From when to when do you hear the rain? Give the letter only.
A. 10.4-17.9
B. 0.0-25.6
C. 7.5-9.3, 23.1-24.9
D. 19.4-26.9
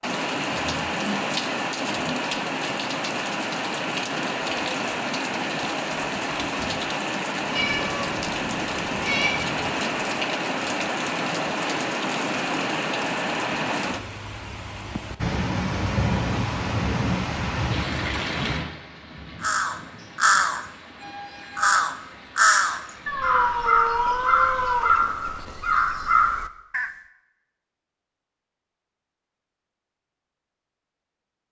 B.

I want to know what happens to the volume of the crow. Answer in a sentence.
The loudness of the crow stays about the same.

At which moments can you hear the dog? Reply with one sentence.
You can't hear the dog here.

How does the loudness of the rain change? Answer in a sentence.
The loudness of the rain goes down.